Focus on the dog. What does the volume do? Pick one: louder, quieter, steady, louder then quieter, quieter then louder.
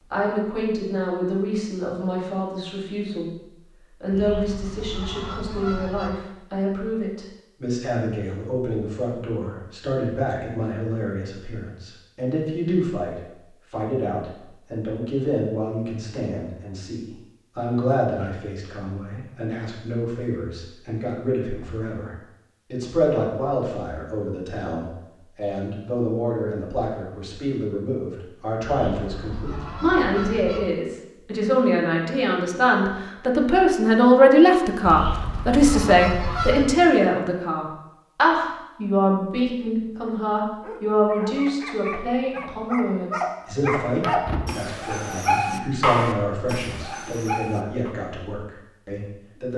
louder then quieter.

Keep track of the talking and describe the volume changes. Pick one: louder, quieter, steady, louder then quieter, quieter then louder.
louder then quieter.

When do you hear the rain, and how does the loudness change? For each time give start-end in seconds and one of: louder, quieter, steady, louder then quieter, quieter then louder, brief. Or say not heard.
not heard.